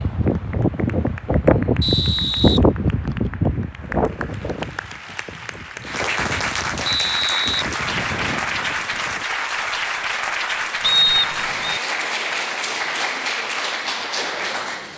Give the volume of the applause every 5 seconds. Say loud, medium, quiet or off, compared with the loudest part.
quiet, loud, loud.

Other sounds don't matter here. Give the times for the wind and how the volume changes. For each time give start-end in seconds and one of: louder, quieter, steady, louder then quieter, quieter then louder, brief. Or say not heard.
0.0-9.2 quieter.